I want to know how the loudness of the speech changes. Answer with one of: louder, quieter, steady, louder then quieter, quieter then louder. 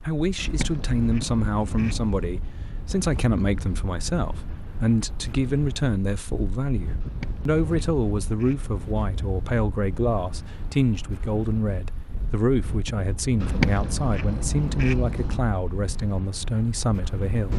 steady.